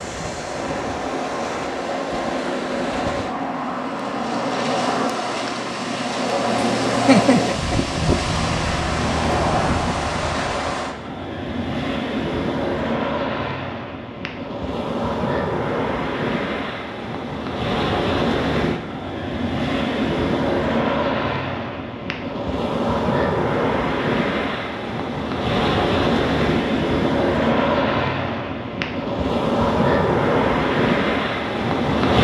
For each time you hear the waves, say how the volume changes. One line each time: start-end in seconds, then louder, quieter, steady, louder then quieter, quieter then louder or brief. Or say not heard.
0.0-32.1 louder.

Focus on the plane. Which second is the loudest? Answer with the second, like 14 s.
7 s.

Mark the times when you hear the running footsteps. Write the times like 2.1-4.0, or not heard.
not heard.